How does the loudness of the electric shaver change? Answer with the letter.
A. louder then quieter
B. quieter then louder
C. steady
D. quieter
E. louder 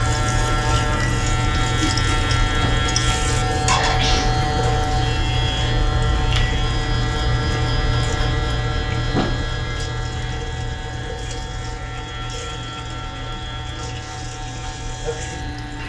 D.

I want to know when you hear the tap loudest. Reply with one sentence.
The loudest moment of the tap is at 3 seconds.